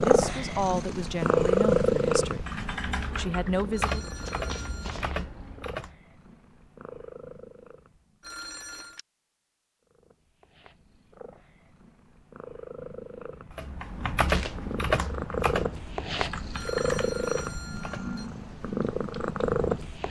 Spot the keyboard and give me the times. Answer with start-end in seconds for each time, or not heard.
2.5-5.9, 13.6-20.0.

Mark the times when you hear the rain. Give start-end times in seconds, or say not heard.
not heard.